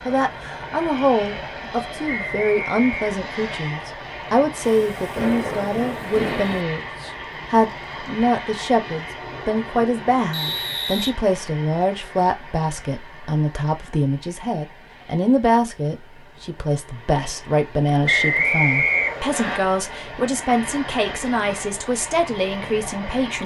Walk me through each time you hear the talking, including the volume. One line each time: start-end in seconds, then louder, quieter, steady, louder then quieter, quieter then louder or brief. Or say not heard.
0.1-23.4 steady.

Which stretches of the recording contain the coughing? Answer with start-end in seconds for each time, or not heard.
not heard.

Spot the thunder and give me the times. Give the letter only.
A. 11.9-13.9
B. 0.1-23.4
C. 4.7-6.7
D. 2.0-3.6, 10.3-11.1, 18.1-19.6
C.